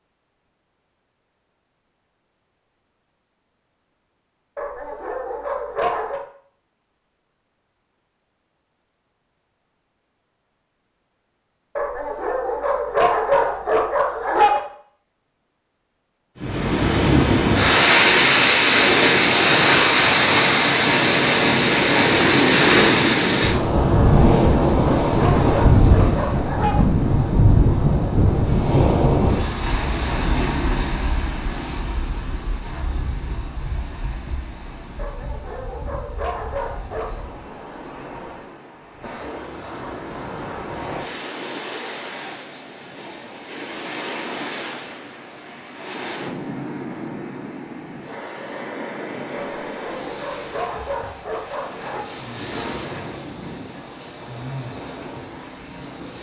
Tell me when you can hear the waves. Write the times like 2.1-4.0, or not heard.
16.4-56.1.